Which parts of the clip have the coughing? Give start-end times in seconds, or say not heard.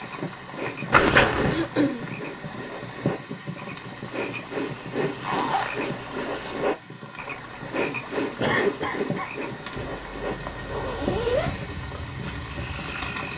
1.4-2.0, 8.4-9.3.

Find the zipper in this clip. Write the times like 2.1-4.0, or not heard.
0.9-1.7, 4.8-6.6, 9.8-11.6.